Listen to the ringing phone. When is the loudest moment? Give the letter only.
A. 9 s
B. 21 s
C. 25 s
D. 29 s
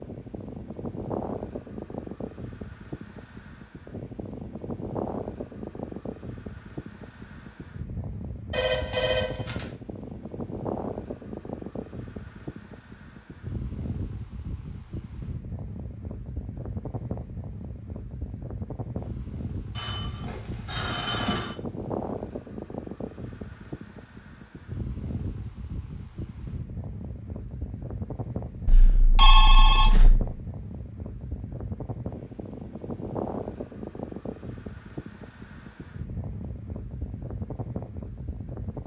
D.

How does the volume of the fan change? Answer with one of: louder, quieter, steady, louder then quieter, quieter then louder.
steady.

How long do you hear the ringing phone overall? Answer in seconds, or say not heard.
5 s.